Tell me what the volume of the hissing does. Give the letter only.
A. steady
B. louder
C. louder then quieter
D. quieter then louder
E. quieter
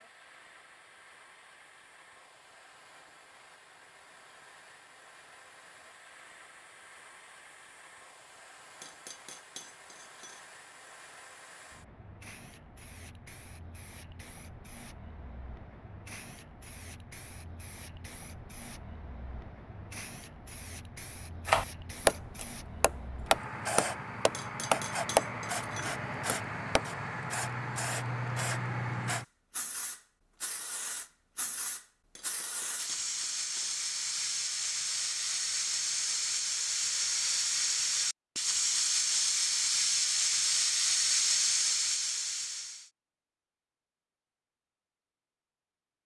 B.